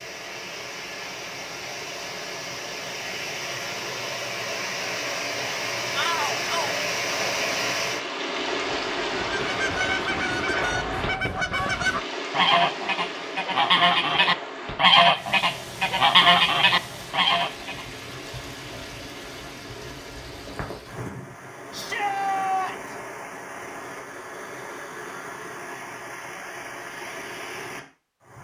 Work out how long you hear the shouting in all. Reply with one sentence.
You can hear the shouting for 2 seconds altogether.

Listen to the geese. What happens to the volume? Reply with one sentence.
The volume of the geese goes up.